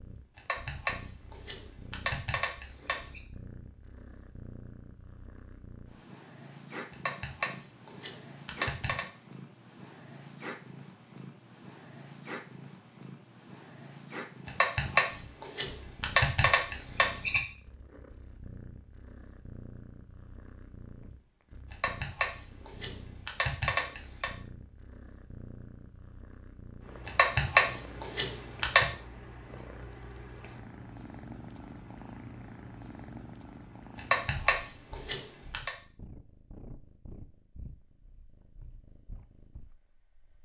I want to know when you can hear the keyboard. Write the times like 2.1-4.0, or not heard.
0.3-3.2, 6.9-9.1, 14.4-17.4, 21.7-24.3, 27.1-28.9, 34.0-35.7.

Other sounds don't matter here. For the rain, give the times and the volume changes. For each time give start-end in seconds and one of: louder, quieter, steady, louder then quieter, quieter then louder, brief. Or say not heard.
not heard.